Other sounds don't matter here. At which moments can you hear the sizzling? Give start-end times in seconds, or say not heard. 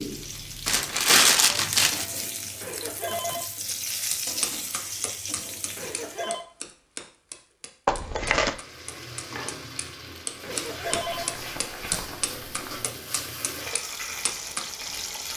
0.0-6.4, 8.4-15.3.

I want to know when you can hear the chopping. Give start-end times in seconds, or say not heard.
4.1-14.7.